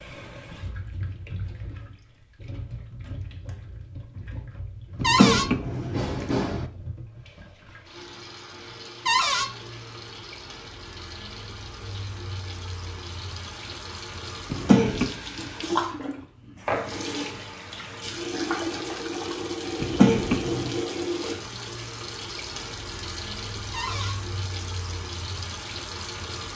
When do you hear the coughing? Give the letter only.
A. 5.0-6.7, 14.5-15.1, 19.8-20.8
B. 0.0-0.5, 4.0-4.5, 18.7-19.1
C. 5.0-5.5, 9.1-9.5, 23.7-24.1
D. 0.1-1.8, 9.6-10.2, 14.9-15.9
A.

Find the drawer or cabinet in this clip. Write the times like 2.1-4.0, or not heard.
5.0-5.5, 9.1-9.5, 23.7-24.1.